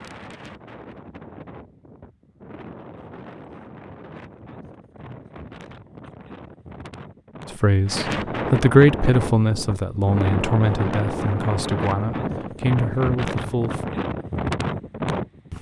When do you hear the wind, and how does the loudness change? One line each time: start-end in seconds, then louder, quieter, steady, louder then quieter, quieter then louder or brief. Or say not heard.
0.0-15.5 louder.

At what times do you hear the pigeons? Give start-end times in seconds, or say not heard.
not heard.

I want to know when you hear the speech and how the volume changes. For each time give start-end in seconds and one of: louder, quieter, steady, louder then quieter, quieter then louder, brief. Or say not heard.
7.6-13.9 quieter.